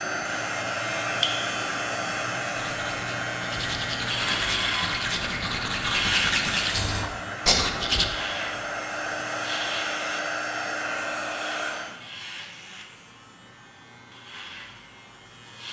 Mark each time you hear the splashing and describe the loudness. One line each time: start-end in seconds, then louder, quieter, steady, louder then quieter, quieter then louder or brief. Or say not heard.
not heard.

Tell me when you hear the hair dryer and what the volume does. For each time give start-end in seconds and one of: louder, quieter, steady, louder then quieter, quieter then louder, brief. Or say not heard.
0.0-11.9 quieter then louder.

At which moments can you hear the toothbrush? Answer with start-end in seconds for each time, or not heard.
2.5-8.1.